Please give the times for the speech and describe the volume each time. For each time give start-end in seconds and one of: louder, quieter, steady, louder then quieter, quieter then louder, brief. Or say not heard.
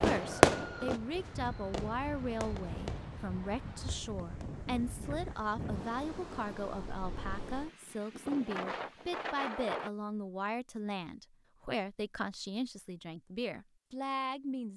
0.0-14.7 steady.